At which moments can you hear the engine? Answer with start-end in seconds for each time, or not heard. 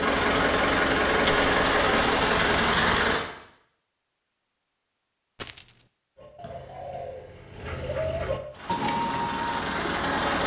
0.0-3.2, 8.5-10.4.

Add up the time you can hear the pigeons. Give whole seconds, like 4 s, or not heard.
4 s.